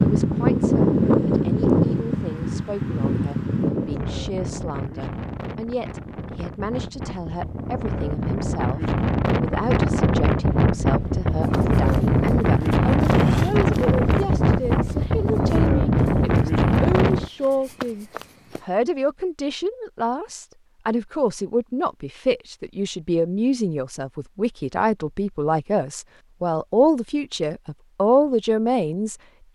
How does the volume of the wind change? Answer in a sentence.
The volume of the wind goes down, then up.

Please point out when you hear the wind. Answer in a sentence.
You can hear the wind from 0.0 to 17.3 s.